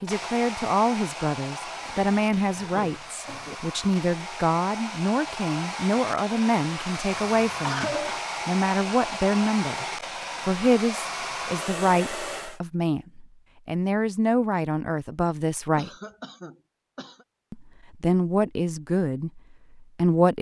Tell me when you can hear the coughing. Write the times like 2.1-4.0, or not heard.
1.8-3.5, 7.1-8.2, 15.8-17.2.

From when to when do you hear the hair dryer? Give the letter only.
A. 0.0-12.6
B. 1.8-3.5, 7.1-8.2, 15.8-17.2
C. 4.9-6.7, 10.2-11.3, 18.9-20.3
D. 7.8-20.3
A.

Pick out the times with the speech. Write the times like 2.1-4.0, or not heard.
0.0-9.8, 10.4-15.9, 17.5-20.3.